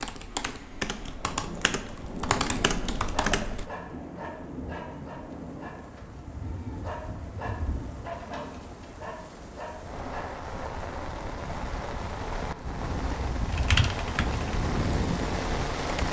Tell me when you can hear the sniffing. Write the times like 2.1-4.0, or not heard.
not heard.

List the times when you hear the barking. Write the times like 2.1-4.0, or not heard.
3.1-10.7.